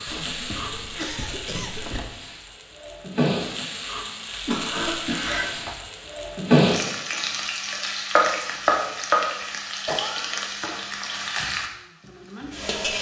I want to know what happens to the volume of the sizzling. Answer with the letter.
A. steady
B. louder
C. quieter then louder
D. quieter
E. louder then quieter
E.